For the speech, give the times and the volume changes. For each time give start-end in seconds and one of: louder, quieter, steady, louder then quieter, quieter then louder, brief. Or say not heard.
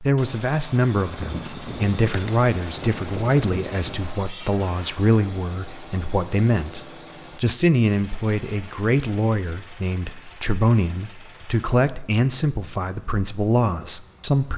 0.0-14.5 steady.